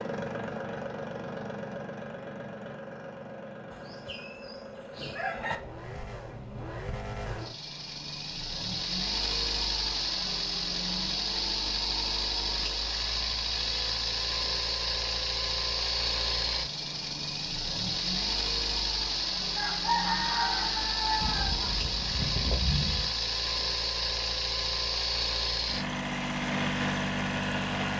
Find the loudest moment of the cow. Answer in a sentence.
The loudest moment of the cow is at 23 seconds.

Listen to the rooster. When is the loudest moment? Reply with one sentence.
The loudest moment of the rooster is at 20 seconds.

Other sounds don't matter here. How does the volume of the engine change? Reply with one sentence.
The loudness of the engine goes up.